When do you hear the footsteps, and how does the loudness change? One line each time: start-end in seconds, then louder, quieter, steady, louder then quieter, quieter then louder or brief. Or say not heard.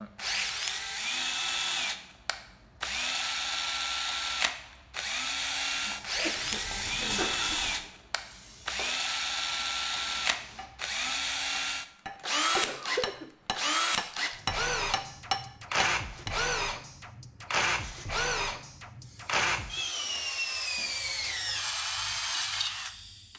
not heard.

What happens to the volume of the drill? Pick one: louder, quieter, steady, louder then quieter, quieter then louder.
steady.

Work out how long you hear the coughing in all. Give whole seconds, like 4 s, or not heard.
2 s.